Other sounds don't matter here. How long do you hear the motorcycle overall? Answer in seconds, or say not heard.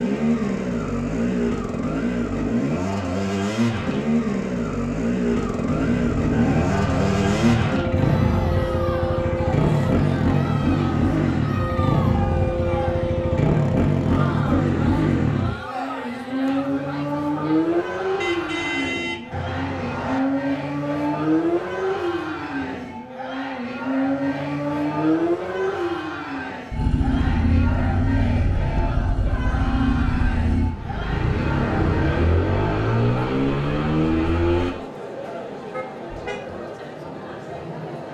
35 s.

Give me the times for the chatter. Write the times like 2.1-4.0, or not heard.
6.3-38.1.